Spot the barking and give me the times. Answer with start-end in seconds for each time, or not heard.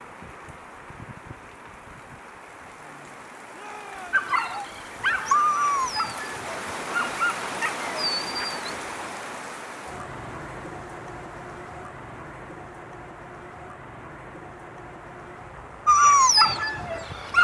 4.1-9.1, 15.8-17.3.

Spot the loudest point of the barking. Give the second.
16 s.